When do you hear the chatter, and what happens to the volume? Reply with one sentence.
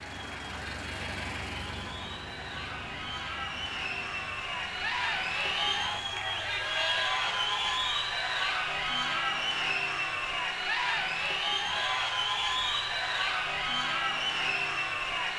You can hear the chatter from 0.0 to 15.3 s, getting louder.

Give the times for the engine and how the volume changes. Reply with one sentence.
The engine can be heard from 0.0 to 6.2 s, getting quieter.